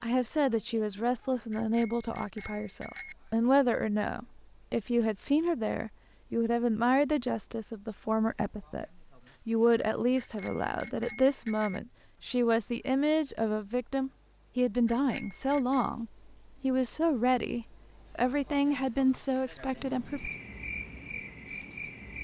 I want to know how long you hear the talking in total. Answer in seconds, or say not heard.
20 s.